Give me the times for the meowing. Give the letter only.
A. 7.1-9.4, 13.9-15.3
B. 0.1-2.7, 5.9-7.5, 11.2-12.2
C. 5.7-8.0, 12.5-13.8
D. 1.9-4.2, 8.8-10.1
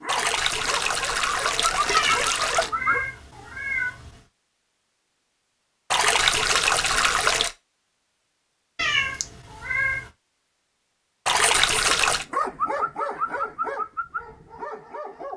D.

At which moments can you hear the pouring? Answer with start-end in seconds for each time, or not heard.
0.1-2.7, 5.9-7.5, 11.2-12.2.